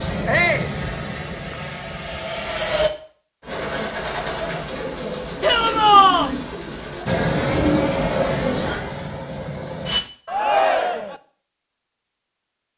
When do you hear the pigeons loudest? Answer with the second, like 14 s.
8 s.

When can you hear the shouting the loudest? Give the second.
6 s.